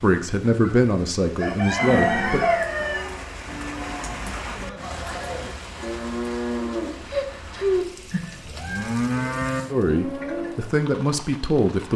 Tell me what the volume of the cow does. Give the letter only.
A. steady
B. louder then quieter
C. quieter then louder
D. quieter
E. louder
E.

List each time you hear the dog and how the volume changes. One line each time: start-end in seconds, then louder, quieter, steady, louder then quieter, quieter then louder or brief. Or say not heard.
not heard.